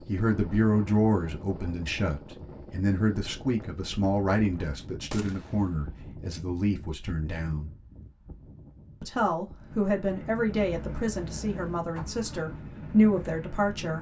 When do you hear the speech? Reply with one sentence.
You can hear the speech from 0.1 to 7.7 s and from 9.0 to 13.9 s.